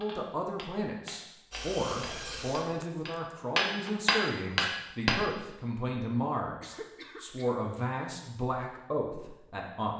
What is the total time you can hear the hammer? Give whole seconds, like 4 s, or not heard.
5 s.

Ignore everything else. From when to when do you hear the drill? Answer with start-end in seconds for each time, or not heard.
1.5-2.9.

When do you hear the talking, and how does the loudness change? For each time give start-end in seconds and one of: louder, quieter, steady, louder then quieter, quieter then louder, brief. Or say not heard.
0.0-9.9 steady.